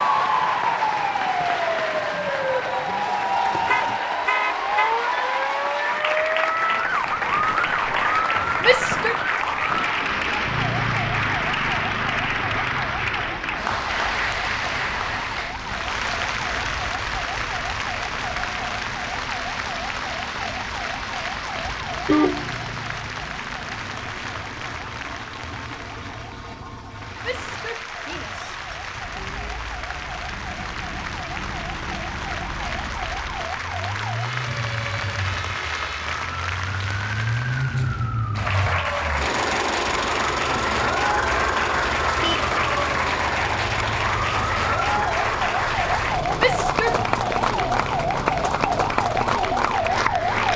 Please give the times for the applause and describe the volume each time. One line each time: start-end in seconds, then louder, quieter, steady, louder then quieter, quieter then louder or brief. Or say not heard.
0.0-50.5 quieter then louder.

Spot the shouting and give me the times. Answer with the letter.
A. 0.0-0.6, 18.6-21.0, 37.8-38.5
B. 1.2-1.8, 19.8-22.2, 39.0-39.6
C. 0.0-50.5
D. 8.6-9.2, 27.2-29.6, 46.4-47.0
D.